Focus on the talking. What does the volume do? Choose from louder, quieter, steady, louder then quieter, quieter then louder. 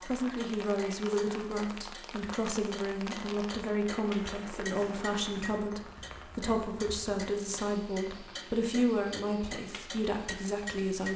steady.